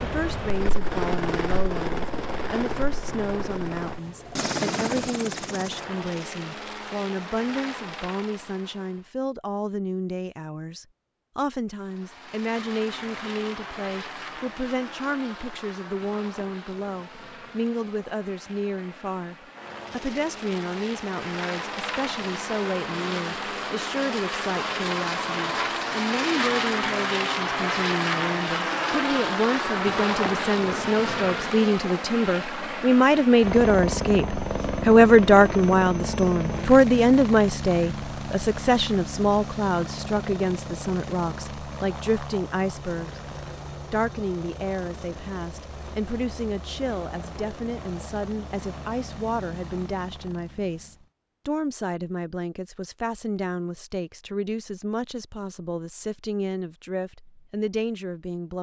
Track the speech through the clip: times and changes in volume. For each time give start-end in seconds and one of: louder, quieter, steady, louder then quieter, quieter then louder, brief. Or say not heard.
0.0-43.2 louder
43.9-58.5 steady.